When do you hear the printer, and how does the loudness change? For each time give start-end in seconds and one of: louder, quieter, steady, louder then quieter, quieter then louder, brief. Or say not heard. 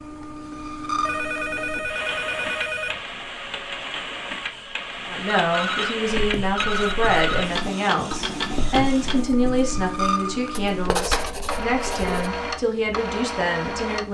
0.0-14.0 steady.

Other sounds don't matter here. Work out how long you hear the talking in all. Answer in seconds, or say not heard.
9 s.